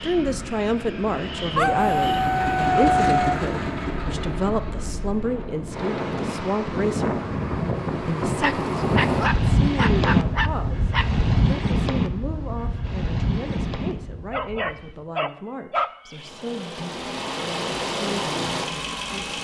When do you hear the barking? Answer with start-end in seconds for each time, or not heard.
1.6-3.4, 8.4-11.1, 14.3-16.3.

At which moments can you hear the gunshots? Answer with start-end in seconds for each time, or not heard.
not heard.